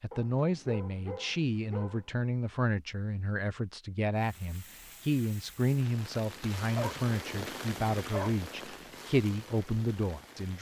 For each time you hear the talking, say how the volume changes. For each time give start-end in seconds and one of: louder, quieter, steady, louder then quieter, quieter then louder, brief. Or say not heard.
0.0-10.5 steady.